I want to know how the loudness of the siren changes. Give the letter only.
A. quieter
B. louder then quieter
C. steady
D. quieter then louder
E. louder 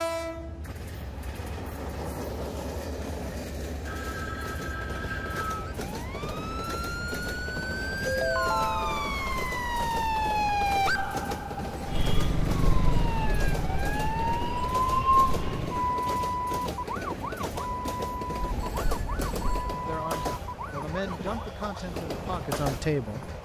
B.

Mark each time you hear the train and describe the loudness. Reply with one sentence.
The train can be heard from 0.0 to 23.4 s, at a steady volume.